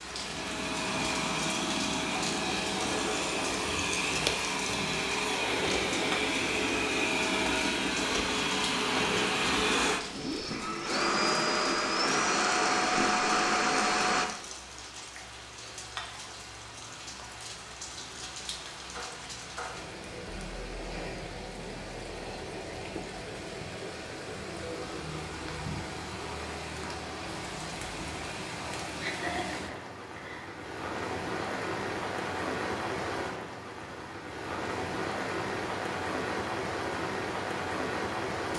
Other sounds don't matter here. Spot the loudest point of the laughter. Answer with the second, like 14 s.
29 s.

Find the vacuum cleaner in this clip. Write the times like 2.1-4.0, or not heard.
0.0-14.3.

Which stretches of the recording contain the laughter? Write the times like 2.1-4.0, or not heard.
28.5-30.6.